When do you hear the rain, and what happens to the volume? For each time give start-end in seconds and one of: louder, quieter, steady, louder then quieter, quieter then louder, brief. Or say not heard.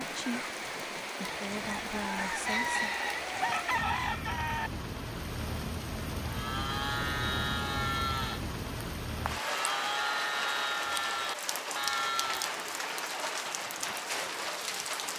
0.0-15.1 steady.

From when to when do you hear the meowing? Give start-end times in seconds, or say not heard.
7.0-8.0.